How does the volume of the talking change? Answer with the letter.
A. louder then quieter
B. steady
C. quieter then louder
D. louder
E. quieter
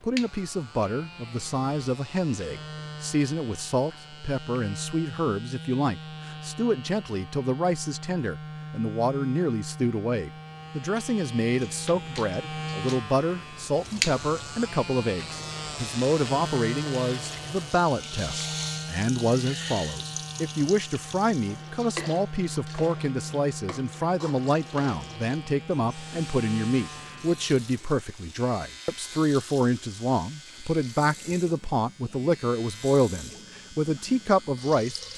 B.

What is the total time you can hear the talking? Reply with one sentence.
The talking can be heard for 35 seconds in total.